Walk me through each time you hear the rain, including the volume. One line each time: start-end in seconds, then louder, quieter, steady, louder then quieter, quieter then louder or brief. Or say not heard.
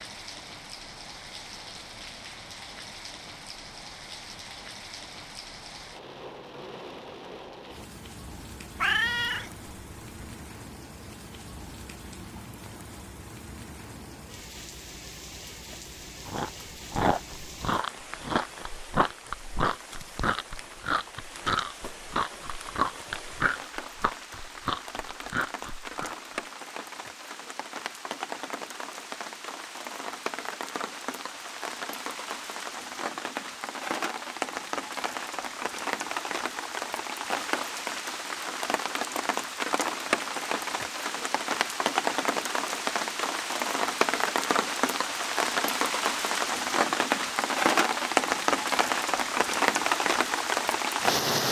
0.0-51.4 louder.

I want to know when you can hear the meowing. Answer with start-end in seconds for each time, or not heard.
8.8-10.2.